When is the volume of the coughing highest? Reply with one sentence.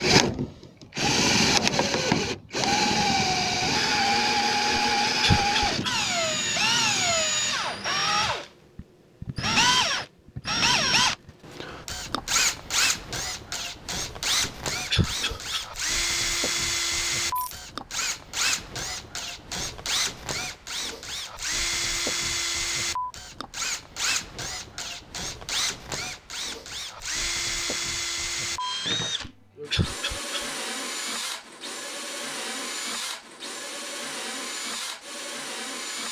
The loudest moment of the coughing is at 5 seconds.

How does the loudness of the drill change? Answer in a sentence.
The loudness of the drill goes down.